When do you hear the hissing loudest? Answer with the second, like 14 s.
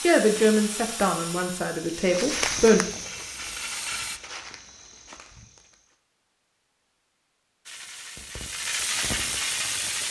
9 s.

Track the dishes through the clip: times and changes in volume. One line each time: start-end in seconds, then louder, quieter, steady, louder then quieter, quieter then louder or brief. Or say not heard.
not heard.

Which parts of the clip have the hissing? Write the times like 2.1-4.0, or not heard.
0.0-4.2, 7.7-10.0.